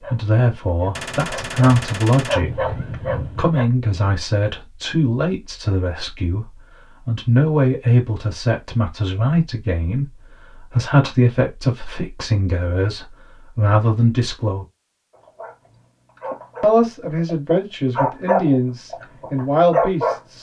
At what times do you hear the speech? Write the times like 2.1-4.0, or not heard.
0.1-14.7, 16.6-20.3.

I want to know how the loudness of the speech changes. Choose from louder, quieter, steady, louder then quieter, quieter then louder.
steady.